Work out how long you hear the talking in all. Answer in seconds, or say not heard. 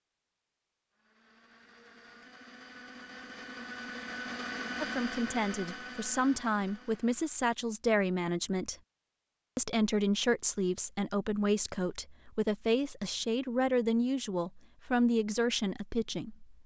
11 s.